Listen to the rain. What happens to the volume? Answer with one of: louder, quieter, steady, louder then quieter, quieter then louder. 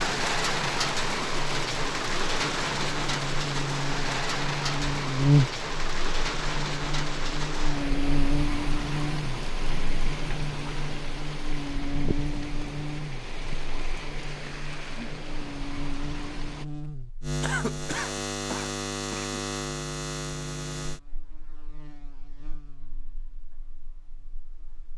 quieter.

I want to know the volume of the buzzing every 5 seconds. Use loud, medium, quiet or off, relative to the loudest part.
medium, loud, medium, medium, quiet.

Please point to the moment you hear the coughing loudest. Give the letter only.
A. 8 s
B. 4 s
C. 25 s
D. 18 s
D.